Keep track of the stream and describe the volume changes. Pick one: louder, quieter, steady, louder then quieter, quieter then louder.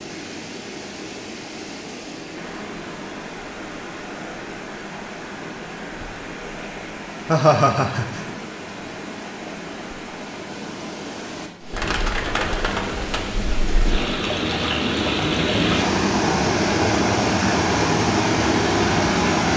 louder.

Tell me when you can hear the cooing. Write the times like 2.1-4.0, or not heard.
11.7-14.1.